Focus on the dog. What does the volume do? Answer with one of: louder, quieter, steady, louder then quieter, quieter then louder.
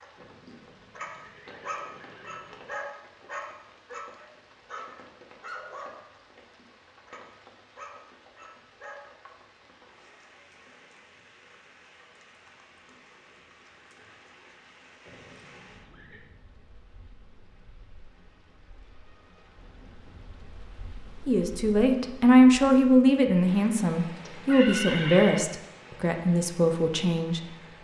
quieter.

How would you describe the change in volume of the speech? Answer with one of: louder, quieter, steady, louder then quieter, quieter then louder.
quieter.